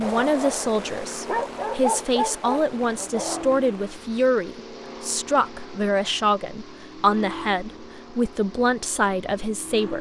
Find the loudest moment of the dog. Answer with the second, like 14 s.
2 s.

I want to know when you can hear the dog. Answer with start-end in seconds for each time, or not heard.
0.0-3.5.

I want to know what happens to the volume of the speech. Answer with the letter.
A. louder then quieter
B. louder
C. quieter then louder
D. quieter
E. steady
E.